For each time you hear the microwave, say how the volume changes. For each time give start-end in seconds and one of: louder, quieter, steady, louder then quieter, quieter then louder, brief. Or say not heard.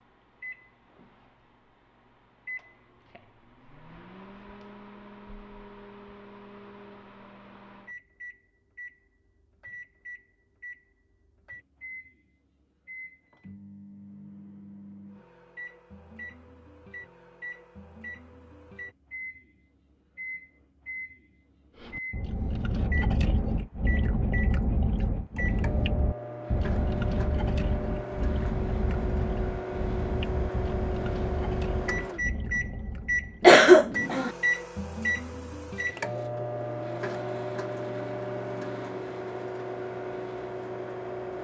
0.0-41.3 louder.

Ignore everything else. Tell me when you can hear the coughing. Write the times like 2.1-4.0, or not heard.
33.4-34.3.